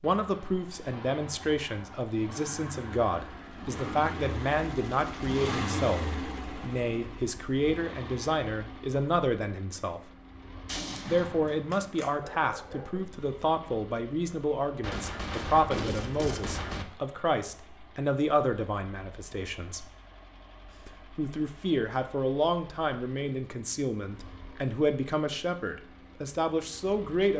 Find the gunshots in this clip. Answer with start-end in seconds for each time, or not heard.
10.7-12.1, 14.8-16.9.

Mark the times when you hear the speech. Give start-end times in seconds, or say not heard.
0.0-10.1, 11.1-19.9, 20.9-27.3.